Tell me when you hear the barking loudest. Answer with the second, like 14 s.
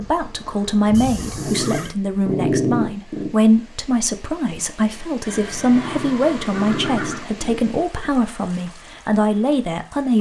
3 s.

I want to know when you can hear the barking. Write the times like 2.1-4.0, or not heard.
1.4-3.3, 5.6-8.1.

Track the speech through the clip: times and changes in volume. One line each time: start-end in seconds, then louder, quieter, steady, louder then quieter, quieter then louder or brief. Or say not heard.
0.0-10.1 steady.